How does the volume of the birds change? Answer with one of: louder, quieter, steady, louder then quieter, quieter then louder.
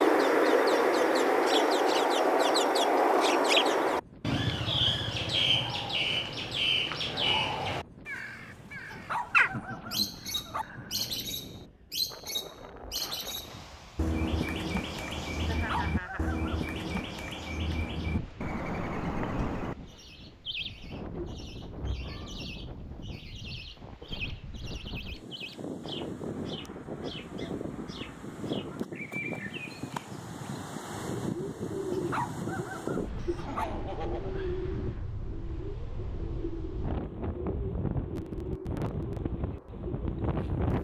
quieter.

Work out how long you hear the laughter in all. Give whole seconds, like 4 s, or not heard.
4 s.